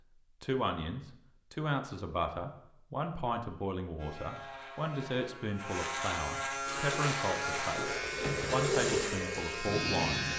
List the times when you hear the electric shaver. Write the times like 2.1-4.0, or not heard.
4.0-10.3.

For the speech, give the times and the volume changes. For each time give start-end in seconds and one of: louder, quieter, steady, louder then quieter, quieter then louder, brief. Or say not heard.
0.4-10.3 steady.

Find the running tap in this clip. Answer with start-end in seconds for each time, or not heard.
6.7-10.3.